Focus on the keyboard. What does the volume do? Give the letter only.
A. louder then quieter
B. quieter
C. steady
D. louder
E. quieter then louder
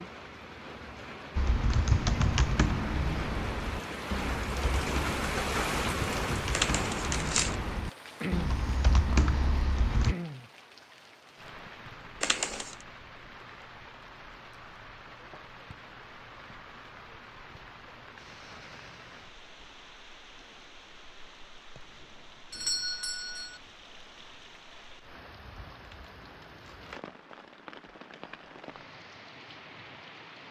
E.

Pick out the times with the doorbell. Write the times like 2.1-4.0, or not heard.
22.5-23.6.